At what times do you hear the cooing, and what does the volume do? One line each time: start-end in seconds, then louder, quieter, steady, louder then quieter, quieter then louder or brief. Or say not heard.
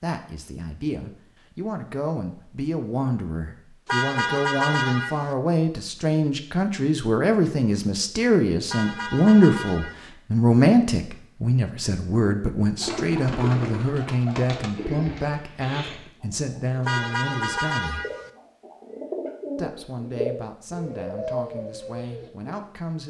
12.8-22.6 quieter then louder.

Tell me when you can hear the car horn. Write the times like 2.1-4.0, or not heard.
3.9-5.3, 8.7-10.1, 16.9-18.3.